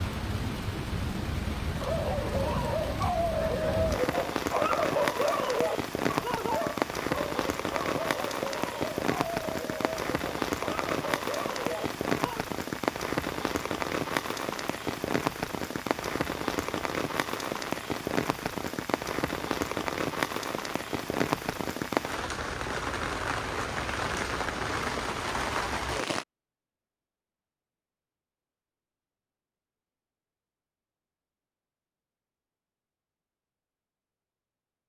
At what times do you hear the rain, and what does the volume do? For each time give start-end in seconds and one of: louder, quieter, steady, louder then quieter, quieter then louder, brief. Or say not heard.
0.0-26.2 steady.